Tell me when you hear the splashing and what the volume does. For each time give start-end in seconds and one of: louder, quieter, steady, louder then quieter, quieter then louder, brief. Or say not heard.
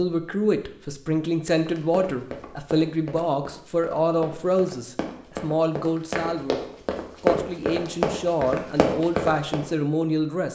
not heard.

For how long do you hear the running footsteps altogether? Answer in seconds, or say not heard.
8 s.